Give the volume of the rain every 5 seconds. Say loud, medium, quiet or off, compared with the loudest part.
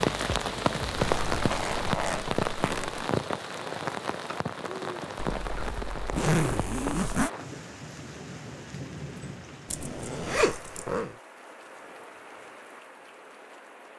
loud, medium, quiet.